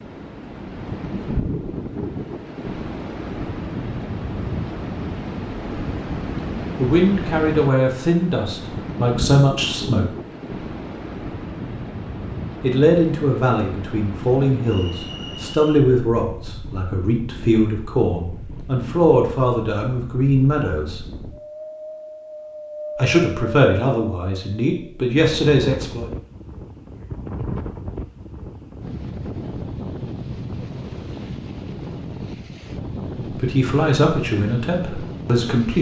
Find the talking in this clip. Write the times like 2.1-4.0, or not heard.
6.8-10.1, 12.6-21.1, 22.9-26.1, 33.3-35.7.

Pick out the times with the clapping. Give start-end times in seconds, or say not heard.
not heard.